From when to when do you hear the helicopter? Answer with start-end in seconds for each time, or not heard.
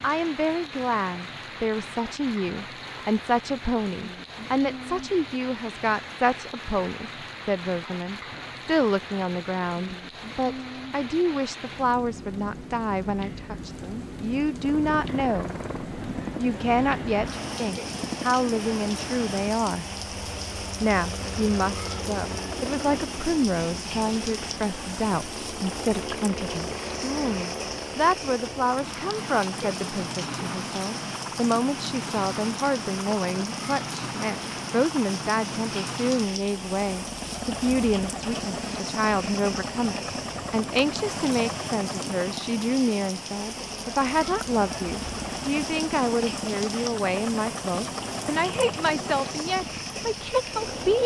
14.6-51.0.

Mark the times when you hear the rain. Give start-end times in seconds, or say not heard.
0.0-51.0.